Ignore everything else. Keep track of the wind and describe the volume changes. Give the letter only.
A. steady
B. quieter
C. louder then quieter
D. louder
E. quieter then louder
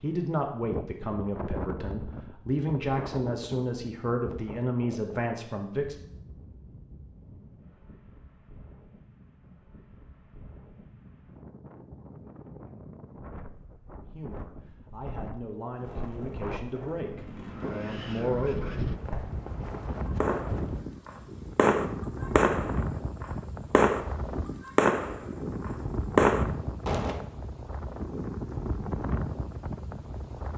E.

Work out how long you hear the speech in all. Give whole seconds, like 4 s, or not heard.
11 s.